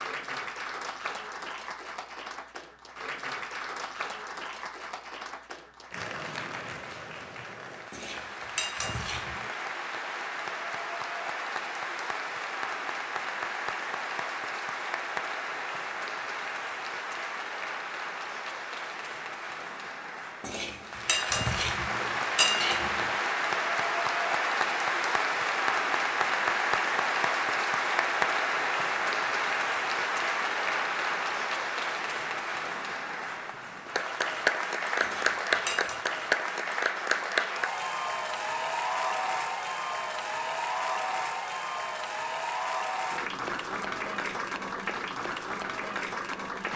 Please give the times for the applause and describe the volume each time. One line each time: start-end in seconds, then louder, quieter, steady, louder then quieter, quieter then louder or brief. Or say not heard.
0.0-46.7 louder.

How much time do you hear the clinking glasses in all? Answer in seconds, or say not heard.
5 s.